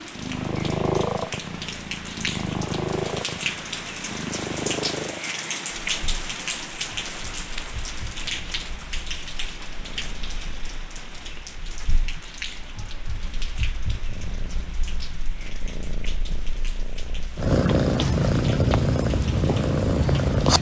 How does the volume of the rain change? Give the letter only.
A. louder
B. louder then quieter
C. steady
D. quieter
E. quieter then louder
D.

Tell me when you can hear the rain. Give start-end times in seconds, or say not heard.
0.0-20.4.